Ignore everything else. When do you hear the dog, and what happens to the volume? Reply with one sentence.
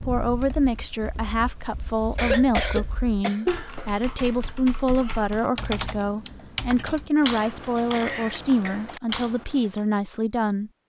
The dog can't be heard in this clip.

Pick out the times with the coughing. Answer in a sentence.
You can hear the coughing from 2.1 to 3.5 s and from 7.3 to 8.8 s.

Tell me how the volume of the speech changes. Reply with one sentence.
The volume of the speech stays about the same.